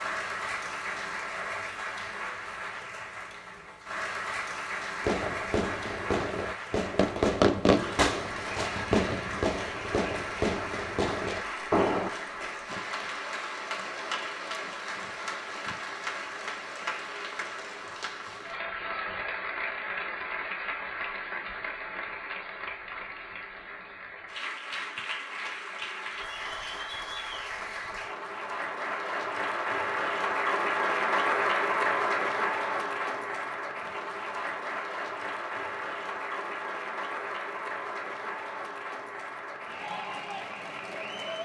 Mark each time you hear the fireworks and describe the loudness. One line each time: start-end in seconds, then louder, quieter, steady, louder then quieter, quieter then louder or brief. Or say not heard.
5.0-12.1 louder then quieter.